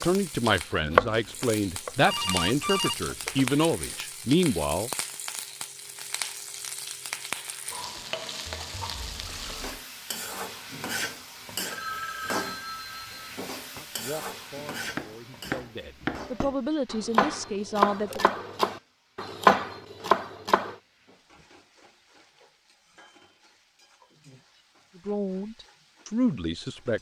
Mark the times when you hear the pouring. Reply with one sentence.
The pouring can be heard from 8.9 to 9.8 s.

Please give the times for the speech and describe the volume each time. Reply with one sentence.
The speech can be heard from 0.0 to 4.9 s, at a steady volume; from 13.8 to 18.2 s, getting louder; and briefly from 24.9 to 26.9 s.